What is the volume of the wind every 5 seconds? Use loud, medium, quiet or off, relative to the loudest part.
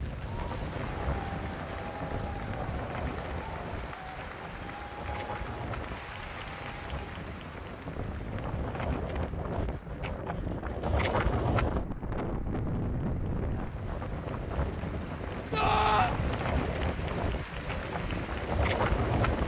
medium, medium, loud, loud.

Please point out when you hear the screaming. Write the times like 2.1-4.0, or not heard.
15.5-16.1.